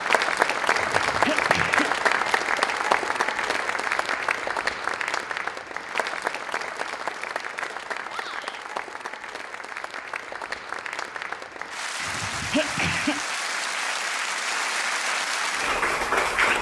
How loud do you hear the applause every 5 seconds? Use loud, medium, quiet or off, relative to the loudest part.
loud, medium, medium, loud.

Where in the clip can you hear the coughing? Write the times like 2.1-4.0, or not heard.
0.7-1.9, 12.0-13.3.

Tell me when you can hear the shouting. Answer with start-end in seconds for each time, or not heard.
8.1-8.6.